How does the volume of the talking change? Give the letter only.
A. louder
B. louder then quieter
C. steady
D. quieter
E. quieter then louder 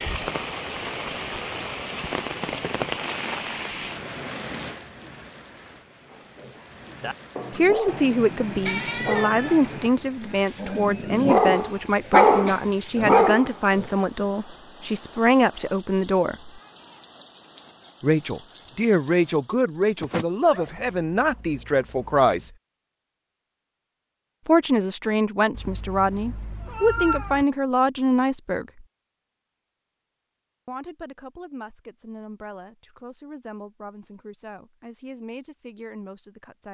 D.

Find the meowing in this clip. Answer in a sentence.
The meowing can be heard from 7.8 to 9.9 s, from 20.0 to 20.8 s and from 25.5 to 27.4 s.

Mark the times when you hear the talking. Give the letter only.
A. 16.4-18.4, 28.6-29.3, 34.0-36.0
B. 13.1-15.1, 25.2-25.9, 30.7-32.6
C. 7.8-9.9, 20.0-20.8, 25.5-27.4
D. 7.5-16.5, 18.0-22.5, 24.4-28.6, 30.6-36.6
D.